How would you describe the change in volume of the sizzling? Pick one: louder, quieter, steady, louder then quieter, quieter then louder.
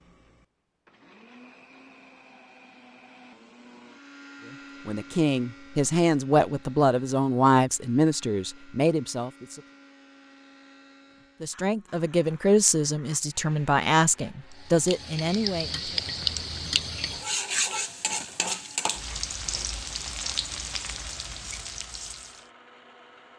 quieter.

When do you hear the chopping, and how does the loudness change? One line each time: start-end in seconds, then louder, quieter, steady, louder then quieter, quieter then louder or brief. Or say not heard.
not heard.